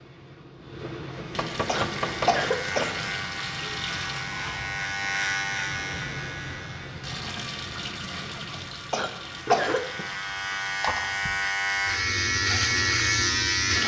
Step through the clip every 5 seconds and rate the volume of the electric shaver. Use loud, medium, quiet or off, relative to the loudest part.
medium, medium, loud.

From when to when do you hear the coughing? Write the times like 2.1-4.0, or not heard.
1.6-3.0, 8.9-9.8.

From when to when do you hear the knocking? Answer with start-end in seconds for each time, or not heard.
1.1-3.0.